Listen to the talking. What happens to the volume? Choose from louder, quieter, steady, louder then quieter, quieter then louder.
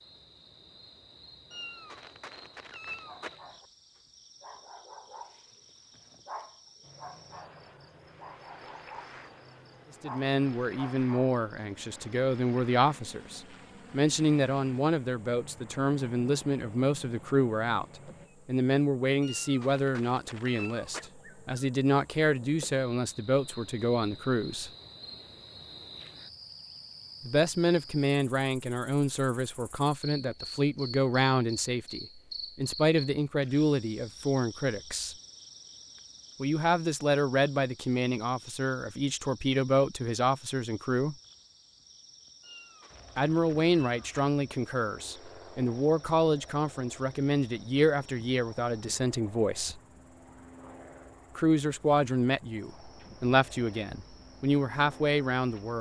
steady.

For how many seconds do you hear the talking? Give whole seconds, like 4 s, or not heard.
38 s.